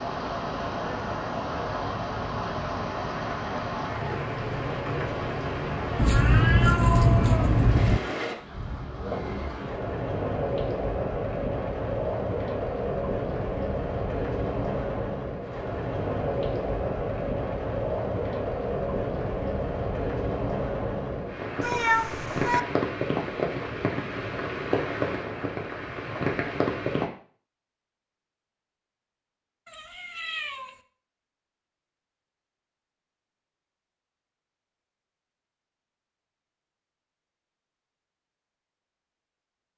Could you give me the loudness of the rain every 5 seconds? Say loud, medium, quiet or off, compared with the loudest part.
loud, loud, loud, loud, loud, loud, off, off.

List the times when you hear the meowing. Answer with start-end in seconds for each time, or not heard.
6.0-8.0, 21.6-22.6, 29.6-30.8.